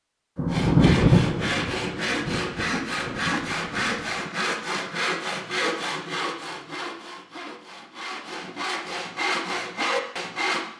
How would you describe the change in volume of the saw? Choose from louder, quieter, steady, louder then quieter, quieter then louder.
quieter then louder.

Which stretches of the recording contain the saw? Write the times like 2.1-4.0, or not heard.
0.5-10.7.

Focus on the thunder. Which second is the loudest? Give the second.
1 s.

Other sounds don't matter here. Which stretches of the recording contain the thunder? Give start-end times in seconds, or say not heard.
0.3-4.0.